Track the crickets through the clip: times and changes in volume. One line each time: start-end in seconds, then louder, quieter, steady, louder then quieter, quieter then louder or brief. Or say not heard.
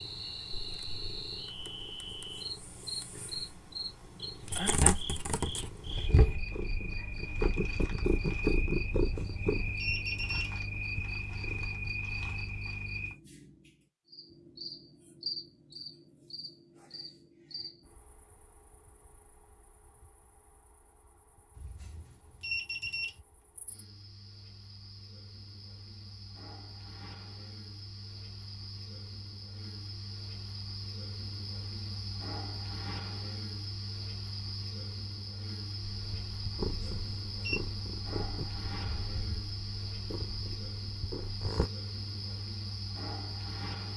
0.0-43.9 quieter then louder.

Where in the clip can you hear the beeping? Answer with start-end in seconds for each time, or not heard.
9.1-10.5, 21.6-23.1, 36.6-37.6.